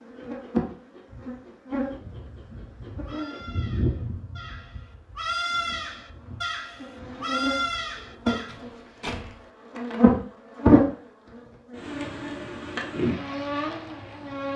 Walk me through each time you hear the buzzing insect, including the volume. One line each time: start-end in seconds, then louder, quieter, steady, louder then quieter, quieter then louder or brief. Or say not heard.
0.0-14.5 louder then quieter.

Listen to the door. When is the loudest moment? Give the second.
9 s.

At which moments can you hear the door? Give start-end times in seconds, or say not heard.
8.0-9.5.